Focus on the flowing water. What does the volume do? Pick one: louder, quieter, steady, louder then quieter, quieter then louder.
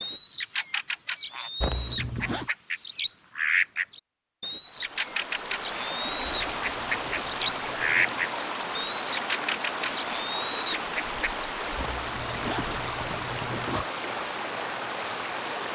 steady.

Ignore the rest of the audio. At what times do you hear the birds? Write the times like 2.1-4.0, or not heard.
0.0-11.3.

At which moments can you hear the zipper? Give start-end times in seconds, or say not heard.
1.6-2.5, 6.2-8.2, 11.8-13.8.